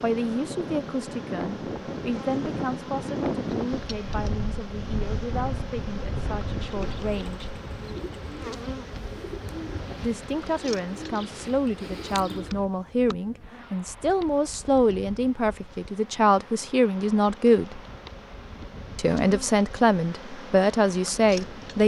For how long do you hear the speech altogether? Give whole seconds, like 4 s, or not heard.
18 s.